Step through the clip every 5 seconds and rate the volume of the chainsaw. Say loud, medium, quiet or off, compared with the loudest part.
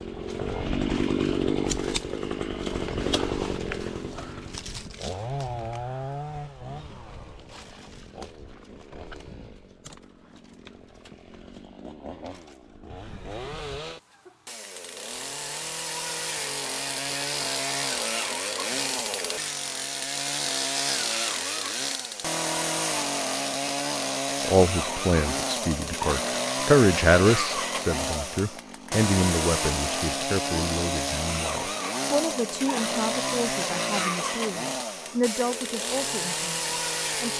loud, medium, quiet, loud, loud, loud, loud, loud.